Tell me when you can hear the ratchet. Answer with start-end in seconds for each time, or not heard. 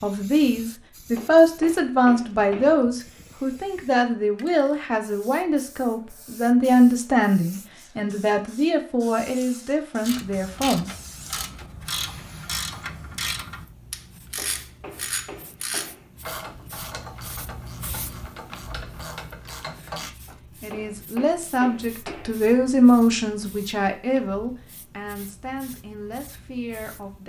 10.0-20.4.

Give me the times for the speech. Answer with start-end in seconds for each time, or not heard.
0.0-10.9, 20.0-27.2.